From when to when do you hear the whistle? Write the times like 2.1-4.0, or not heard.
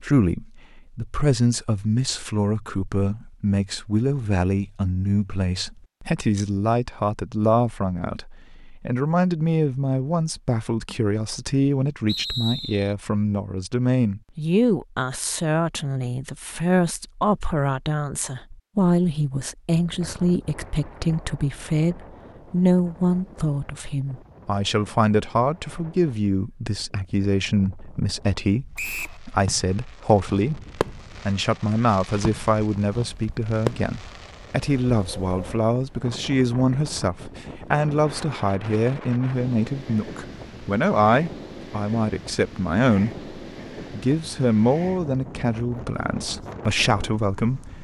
12.1-12.9, 28.8-29.2.